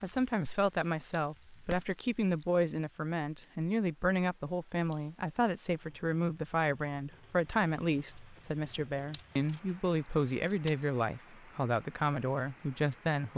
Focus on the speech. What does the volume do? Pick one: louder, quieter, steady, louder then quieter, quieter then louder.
steady.